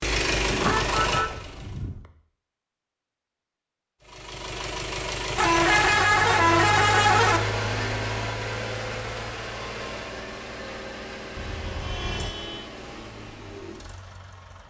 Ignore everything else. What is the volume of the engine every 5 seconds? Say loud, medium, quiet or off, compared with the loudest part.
loud, loud, medium.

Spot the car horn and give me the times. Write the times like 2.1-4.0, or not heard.
0.5-2.0, 5.3-7.4, 11.3-12.7.